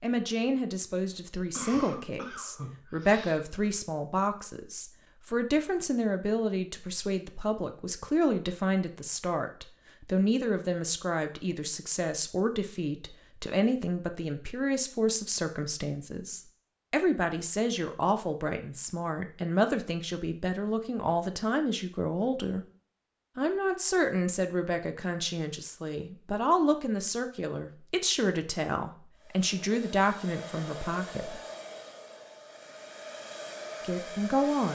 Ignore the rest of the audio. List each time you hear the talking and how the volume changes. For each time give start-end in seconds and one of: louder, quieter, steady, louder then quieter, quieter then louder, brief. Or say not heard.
0.0-22.6 steady
23.4-31.4 steady
33.8-34.7 brief.